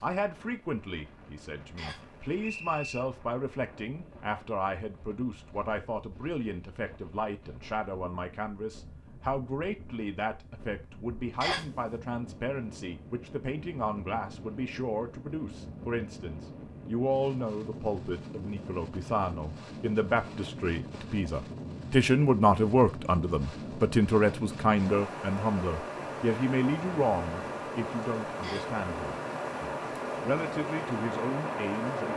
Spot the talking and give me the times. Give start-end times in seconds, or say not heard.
0.0-32.1.